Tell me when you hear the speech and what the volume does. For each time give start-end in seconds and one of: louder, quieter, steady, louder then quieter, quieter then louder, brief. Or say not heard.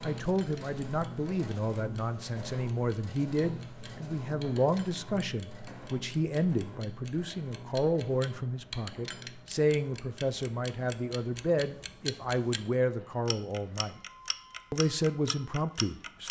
0.0-14.0 steady
14.7-16.2 brief.